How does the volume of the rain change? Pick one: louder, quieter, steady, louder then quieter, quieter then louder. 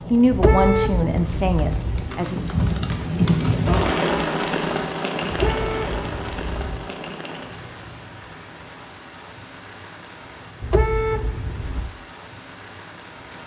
louder then quieter.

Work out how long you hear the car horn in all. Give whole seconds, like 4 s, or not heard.
5 s.